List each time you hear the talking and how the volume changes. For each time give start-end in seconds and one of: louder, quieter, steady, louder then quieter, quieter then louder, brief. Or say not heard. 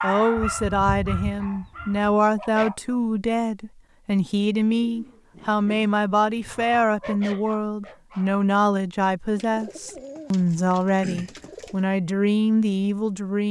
0.0-13.4 steady.